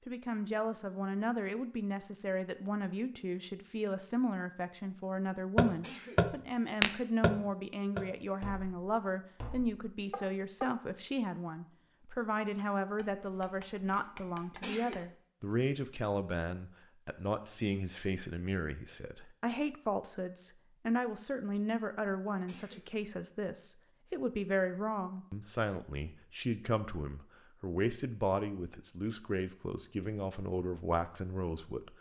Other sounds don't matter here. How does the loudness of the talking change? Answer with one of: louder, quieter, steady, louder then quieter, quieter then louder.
steady.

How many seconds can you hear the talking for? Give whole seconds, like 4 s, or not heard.
32 s.